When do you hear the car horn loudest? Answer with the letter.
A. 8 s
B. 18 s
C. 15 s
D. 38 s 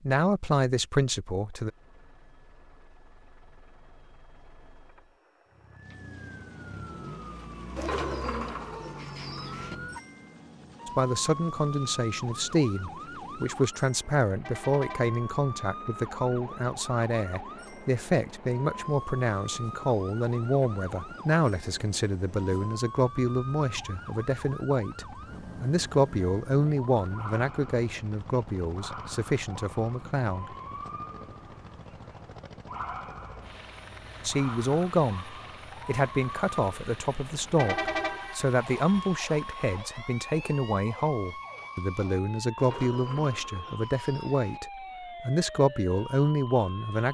D.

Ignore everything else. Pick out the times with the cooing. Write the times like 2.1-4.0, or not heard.
7.8-9.8, 42.5-44.6.